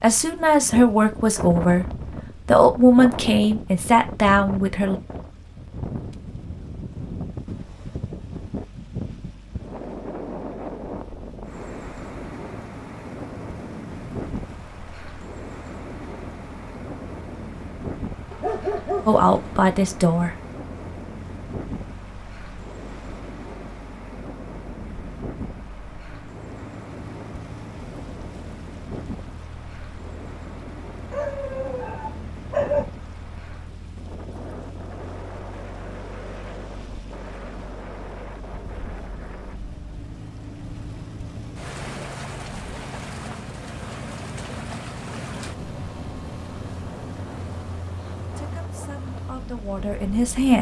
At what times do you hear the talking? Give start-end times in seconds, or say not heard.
0.0-1.9, 2.5-5.0, 19.1-20.4, 48.4-50.5.